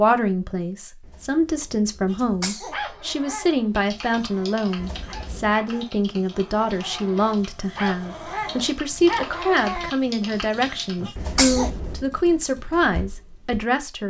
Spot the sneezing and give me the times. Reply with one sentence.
The sneezing can be heard from 2.1 to 2.8 s and from 11.1 to 11.7 s.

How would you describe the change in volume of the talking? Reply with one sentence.
The volume of the talking stays about the same.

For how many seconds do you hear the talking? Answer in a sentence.
The talking can be heard for 14 seconds in total.